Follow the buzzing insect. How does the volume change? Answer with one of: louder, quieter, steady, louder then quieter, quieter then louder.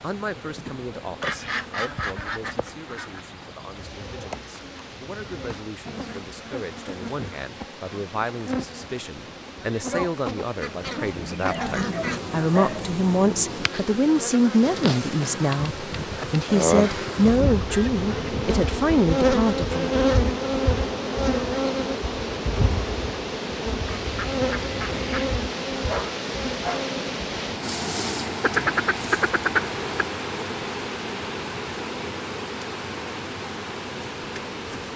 louder then quieter.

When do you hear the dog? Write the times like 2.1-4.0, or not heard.
11.5-12.9, 25.9-26.9.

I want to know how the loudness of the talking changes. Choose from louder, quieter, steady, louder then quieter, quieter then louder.
louder.